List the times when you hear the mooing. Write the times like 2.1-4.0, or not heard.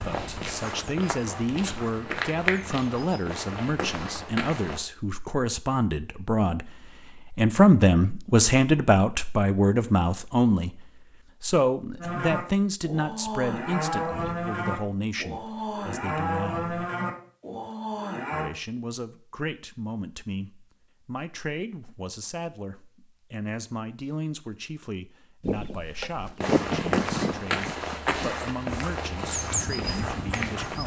11.9-18.5.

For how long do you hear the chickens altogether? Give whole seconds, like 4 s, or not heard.
3 s.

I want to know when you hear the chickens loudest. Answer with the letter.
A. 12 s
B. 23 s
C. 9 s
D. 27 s
D.